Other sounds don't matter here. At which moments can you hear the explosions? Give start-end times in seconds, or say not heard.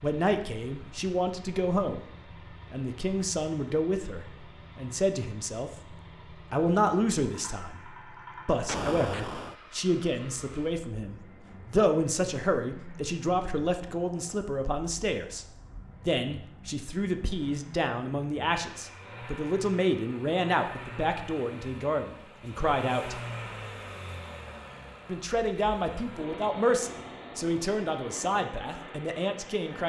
8.7-9.6.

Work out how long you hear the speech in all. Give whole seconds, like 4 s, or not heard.
27 s.